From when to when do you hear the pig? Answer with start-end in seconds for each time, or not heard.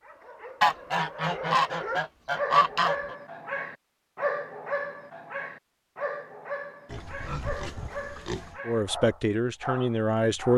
6.8-8.6.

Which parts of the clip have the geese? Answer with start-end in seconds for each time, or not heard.
0.6-3.1.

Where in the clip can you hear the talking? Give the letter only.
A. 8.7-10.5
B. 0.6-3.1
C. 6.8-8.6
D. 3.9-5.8
A.